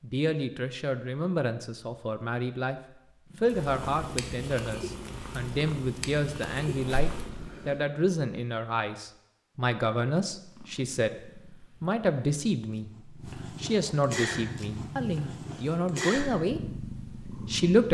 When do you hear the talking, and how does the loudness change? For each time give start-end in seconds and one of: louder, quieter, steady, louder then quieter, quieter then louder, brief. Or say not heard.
0.0-17.8 steady.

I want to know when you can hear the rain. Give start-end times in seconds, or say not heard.
not heard.